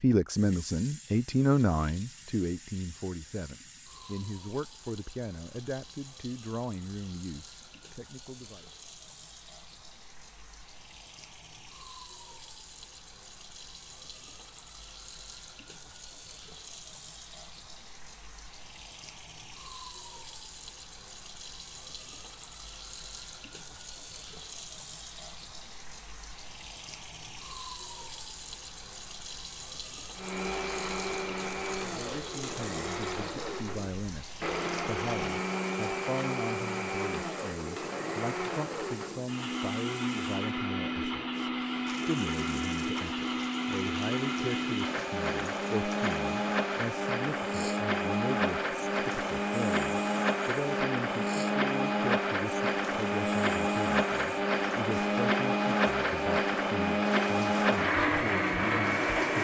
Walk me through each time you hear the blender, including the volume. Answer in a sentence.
The blender can be heard from 30.1 to 59.3 s, getting louder.